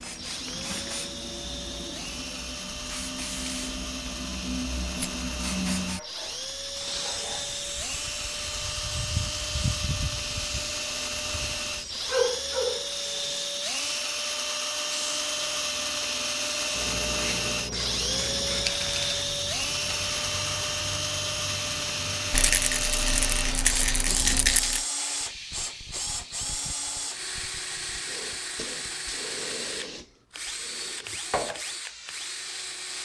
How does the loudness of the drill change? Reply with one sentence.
The volume of the drill goes up, then down.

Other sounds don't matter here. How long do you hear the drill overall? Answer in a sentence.
You can hear the drill for 33 seconds altogether.